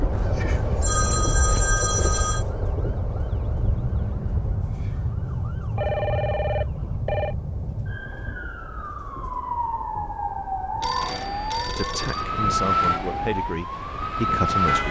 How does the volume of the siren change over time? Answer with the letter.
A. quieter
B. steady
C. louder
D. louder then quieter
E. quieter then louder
C.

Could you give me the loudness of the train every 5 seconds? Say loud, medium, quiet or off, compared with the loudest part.
loud, quiet, medium.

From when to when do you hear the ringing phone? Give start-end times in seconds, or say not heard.
0.1-2.5, 5.8-7.3, 10.8-12.3.